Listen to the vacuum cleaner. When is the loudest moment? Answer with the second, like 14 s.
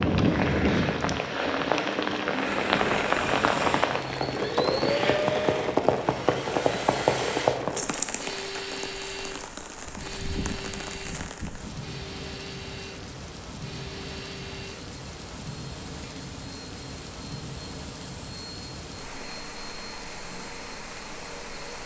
5 s.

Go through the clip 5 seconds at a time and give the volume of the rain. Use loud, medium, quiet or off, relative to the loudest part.
loud, loud, quiet, quiet, quiet.